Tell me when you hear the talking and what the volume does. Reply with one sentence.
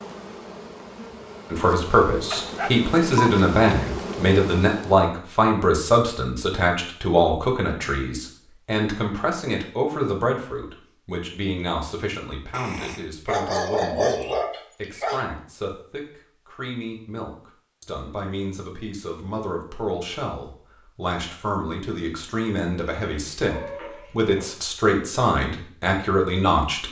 You can hear the talking from 1.5 to 26.8 s, getting quieter then louder.